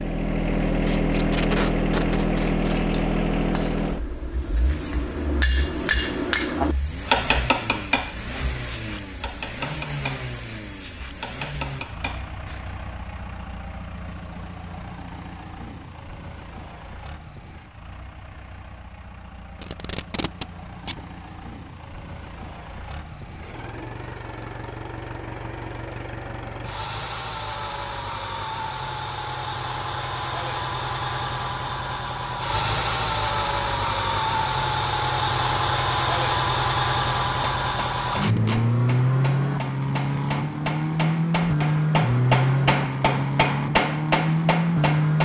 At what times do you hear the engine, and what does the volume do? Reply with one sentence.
You can hear the engine from 0.0 to 45.1 s, getting quieter then louder.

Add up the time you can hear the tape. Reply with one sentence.
The tape can be heard for 4 seconds in total.